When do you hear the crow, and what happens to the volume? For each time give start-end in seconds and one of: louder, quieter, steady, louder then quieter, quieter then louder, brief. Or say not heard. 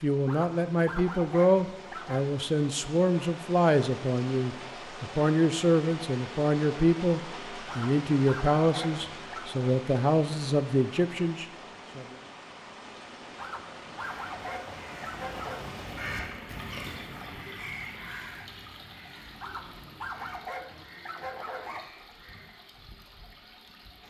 14.2-22.6 quieter.